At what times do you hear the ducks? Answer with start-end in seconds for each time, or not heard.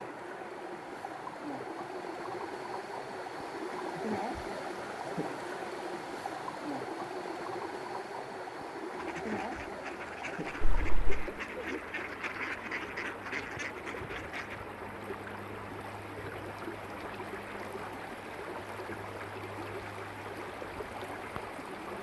8.9-14.7.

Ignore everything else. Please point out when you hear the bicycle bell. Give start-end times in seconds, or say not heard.
10.6-11.3.